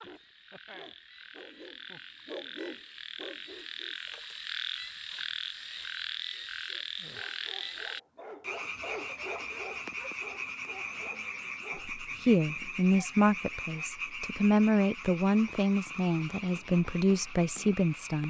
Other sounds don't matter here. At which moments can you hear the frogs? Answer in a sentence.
The frogs can be heard from 0.0 to 18.2 s.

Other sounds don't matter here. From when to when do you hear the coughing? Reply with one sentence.
You can't hear the coughing here.